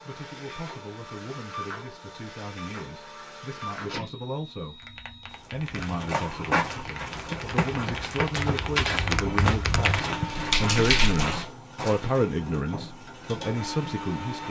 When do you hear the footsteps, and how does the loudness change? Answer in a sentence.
You can hear the footsteps from 5.8 to 12.2 s, at a steady volume.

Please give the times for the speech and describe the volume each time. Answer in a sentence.
You can hear the speech from 0.0 to 14.4 s, getting louder.